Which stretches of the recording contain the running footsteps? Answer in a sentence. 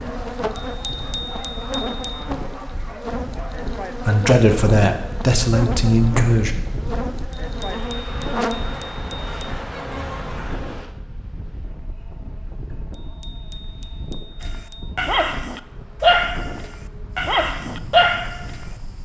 You can't hear the running footsteps here.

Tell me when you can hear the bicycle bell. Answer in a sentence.
The bicycle bell can be heard from 0.6 to 2.2 s, from 7.3 to 9.6 s and from 12.9 to 14.9 s.